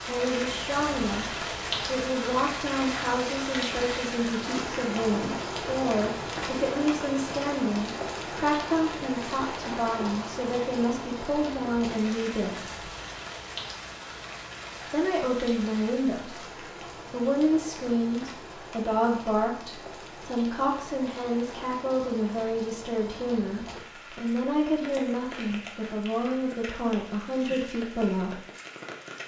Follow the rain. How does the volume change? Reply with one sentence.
The loudness of the rain goes down.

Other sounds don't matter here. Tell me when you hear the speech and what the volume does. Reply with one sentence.
The speech can be heard from 0.1 to 12.8 s, at a steady volume; and from 14.8 to 28.4 s, at a steady volume.